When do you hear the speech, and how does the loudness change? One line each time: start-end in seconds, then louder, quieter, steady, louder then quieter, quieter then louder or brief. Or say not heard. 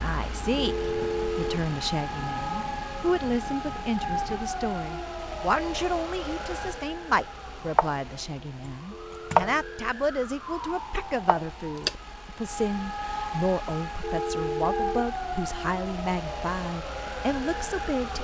0.0-18.1 steady.